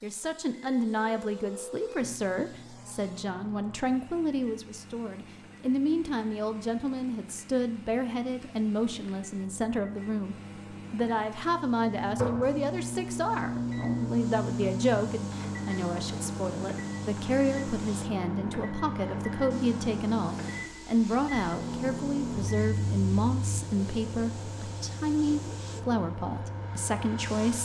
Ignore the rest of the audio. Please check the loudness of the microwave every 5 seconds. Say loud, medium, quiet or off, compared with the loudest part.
quiet, quiet, loud, loud, loud, medium.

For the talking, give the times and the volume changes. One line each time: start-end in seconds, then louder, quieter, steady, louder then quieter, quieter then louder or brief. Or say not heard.
0.0-27.6 steady.